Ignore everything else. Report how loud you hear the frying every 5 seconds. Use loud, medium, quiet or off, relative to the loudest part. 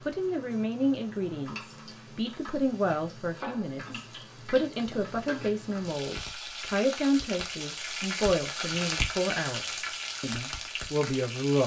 medium, loud, loud.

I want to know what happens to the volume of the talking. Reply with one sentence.
The loudness of the talking stays about the same.